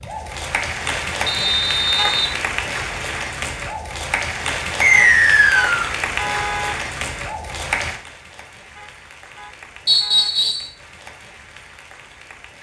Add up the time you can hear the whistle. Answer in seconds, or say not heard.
3 s.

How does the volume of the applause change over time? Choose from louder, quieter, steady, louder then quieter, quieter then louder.
quieter.